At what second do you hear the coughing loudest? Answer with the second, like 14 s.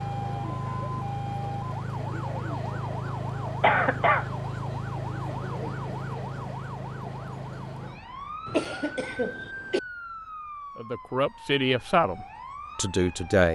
4 s.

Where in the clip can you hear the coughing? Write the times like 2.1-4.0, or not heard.
3.6-4.2, 8.4-9.8.